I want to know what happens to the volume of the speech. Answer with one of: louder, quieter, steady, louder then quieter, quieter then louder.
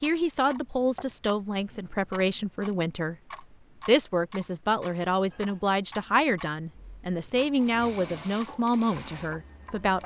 steady.